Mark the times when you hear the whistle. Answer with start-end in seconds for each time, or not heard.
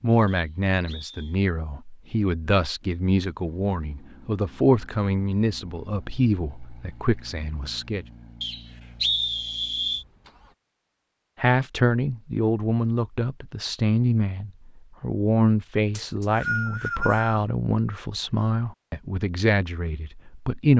0.2-1.4, 8.4-10.1, 15.9-17.4.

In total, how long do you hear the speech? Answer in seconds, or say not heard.
17 s.